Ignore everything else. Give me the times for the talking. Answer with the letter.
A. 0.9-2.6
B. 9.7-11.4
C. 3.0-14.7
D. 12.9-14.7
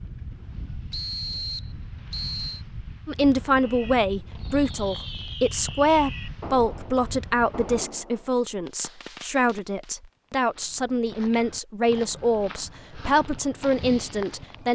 C.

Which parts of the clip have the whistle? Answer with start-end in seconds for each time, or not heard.
0.9-2.6.